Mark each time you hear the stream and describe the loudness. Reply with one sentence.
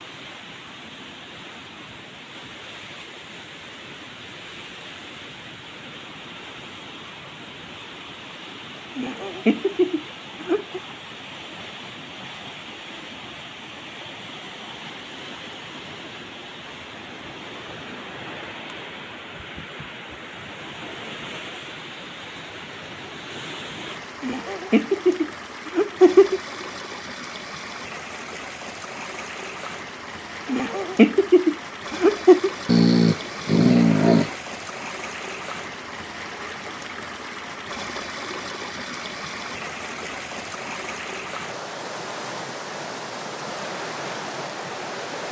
You can hear the stream from 0.0 to 45.2 s, getting louder.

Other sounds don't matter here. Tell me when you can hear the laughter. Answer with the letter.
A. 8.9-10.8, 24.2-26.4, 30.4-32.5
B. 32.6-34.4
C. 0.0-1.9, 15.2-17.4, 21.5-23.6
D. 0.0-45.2
A.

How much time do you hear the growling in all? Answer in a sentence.
The growling can be heard for 2 seconds in total.